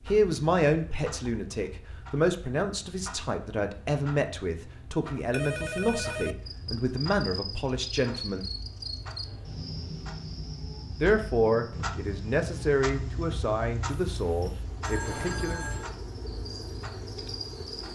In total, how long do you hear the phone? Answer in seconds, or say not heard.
2 s.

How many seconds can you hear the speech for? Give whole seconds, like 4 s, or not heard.
13 s.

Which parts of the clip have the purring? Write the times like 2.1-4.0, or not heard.
not heard.